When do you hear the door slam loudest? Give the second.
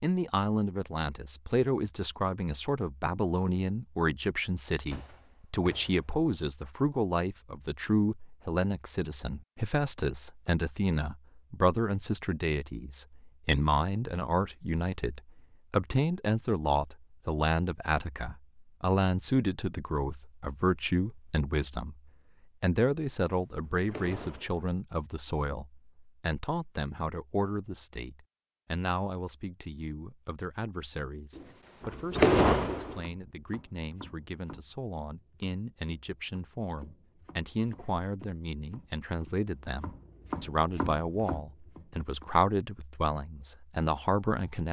32 s.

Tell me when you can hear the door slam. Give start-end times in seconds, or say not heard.
4.9-6.0, 23.1-24.6, 31.4-33.0.